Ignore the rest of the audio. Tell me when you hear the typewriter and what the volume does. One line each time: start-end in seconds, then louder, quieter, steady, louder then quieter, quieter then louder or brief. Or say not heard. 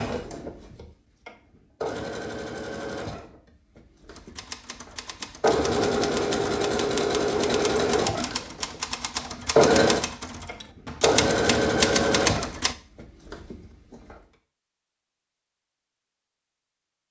4.1-12.8 louder.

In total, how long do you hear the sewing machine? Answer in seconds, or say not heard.
14 s.